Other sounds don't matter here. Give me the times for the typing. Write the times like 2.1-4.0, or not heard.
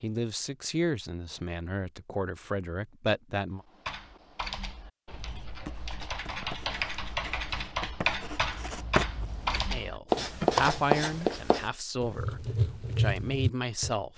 3.6-11.4.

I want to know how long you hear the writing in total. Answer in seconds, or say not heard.
9 s.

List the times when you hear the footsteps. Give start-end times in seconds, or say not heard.
not heard.